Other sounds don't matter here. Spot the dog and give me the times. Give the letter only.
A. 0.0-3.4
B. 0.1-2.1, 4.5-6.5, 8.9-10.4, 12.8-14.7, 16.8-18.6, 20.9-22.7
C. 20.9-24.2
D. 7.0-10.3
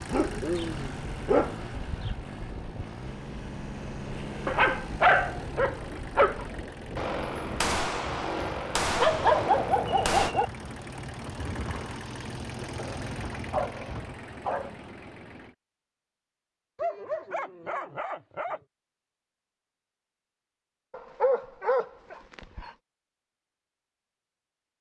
B.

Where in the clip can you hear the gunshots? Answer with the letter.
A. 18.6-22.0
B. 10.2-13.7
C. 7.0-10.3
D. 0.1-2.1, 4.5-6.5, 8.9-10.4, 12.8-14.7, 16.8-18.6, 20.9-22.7
C.